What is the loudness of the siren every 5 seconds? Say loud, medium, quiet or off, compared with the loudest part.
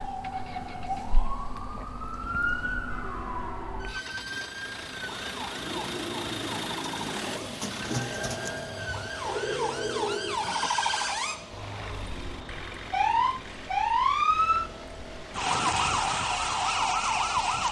medium, medium, loud, loud.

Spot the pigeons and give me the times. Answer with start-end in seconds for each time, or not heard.
5.5-10.7.